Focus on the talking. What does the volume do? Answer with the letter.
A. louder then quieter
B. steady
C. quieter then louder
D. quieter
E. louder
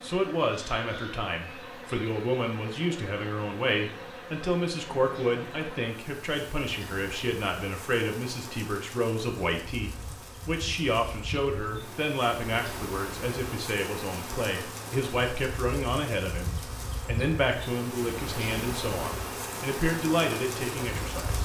B.